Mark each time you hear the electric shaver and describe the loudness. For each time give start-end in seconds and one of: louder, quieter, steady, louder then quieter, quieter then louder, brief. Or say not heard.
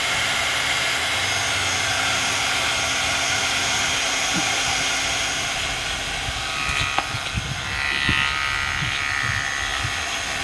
0.0-10.3 louder.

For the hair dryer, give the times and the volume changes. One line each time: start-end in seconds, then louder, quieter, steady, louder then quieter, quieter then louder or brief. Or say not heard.
0.0-10.3 quieter.